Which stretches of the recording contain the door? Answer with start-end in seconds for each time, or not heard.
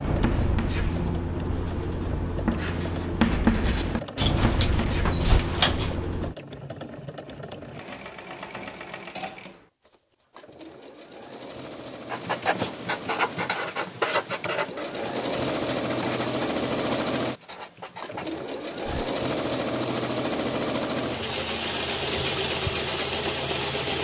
4.2-6.0.